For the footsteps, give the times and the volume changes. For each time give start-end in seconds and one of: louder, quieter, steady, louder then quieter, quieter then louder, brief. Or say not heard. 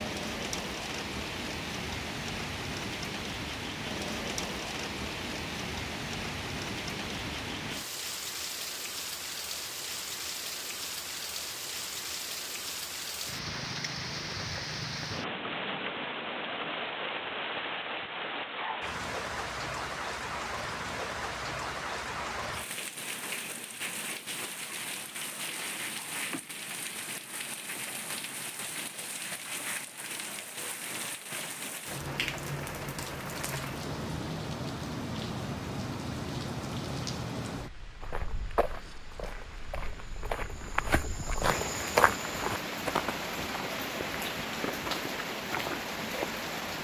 38.0-46.2 louder then quieter.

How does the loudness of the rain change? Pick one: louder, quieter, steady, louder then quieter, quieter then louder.
steady.